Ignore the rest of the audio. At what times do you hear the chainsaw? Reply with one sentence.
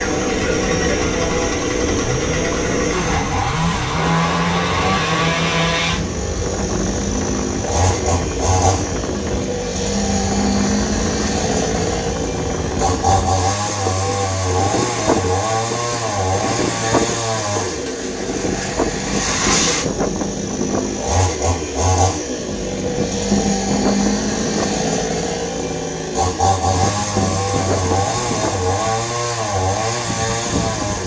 You can hear the chainsaw from 0.0 to 31.0 s.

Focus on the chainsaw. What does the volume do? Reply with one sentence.
The volume of the chainsaw stays about the same.